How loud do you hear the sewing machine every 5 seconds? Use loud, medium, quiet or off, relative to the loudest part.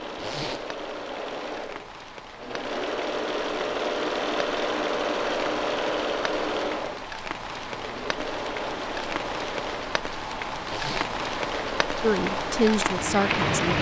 loud, loud, medium.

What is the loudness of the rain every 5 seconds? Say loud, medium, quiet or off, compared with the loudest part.
quiet, medium, loud.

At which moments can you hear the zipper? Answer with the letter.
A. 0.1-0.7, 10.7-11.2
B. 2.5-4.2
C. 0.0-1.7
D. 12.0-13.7
A.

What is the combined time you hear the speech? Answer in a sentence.
The speech can be heard for 2 seconds in total.